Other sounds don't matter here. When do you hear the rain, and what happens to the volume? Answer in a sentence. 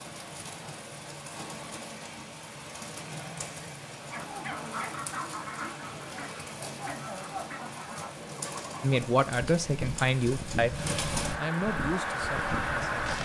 You can hear the rain from 0.0 to 13.2 s, getting louder.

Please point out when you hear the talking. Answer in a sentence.
You can hear the talking from 8.8 to 13.2 s.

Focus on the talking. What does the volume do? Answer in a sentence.
The loudness of the talking goes down.